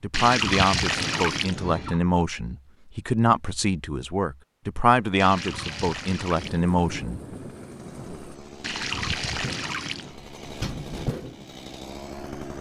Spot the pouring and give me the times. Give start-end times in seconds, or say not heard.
0.1-2.0, 5.2-6.7, 8.6-10.2.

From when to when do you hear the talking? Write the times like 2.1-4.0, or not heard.
0.0-7.2.